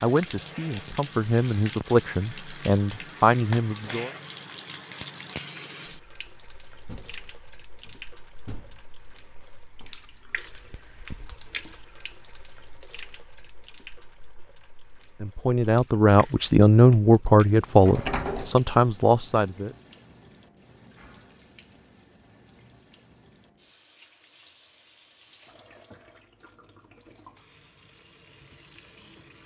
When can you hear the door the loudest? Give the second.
18 s.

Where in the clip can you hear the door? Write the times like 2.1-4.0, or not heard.
6.8-9.0, 17.8-18.6.